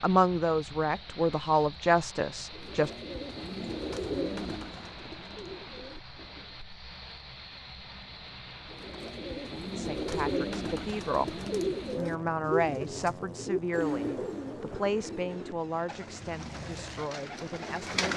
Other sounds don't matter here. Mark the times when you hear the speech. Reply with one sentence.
You can hear the speech from 0.0 to 2.9 s and from 9.8 to 18.1 s.